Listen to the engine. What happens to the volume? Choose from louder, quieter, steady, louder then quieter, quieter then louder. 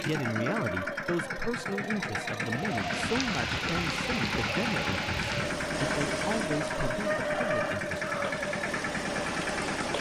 steady.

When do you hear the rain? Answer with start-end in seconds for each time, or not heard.
2.5-9.9.